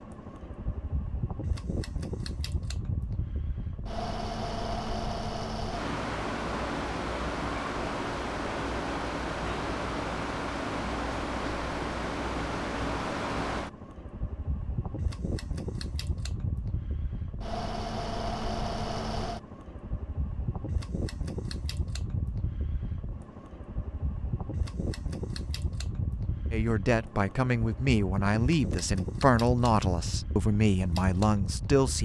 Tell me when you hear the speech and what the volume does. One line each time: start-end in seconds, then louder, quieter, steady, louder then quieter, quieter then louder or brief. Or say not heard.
26.5-31.9 steady.